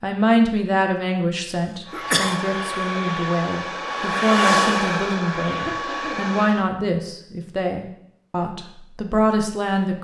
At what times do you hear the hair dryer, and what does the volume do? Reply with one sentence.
You can hear the hair dryer from 1.9 to 6.7 s, getting louder then quieter.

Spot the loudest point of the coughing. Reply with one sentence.
The volume of the coughing peaks at 2 seconds.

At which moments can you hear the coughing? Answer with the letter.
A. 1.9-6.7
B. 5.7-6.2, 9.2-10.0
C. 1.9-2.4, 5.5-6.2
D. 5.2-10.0
C.